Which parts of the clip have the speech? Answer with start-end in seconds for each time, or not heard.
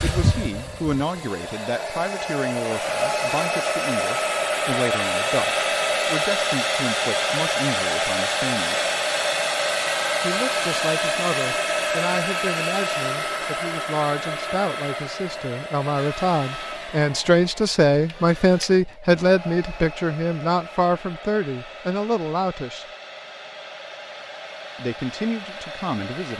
0.0-8.8, 10.2-22.9, 24.8-26.3.